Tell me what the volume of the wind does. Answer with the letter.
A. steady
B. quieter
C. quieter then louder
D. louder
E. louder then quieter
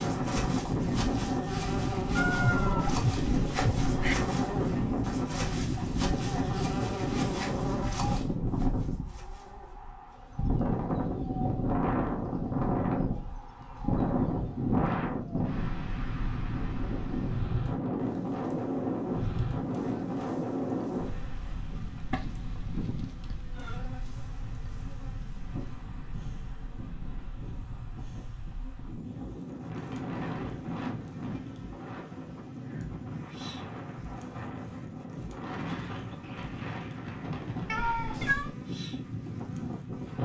B.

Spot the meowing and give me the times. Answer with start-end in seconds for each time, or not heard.
2.1-4.2, 22.1-23.8, 37.6-38.5.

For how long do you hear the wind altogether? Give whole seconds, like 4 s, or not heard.
40 s.